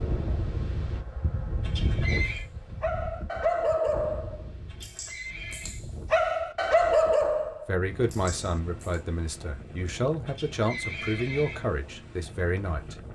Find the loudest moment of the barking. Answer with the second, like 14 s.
7 s.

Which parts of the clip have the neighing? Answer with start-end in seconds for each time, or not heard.
1.6-2.5, 4.7-5.8, 10.2-11.7.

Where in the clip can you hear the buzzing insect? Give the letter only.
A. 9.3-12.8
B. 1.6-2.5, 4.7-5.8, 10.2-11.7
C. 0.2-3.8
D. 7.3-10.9
C.